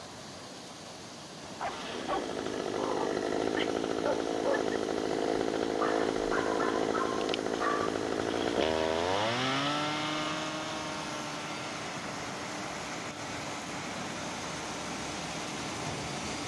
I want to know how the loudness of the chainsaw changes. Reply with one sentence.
The loudness of the chainsaw goes down.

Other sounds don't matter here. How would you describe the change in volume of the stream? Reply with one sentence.
The loudness of the stream goes up.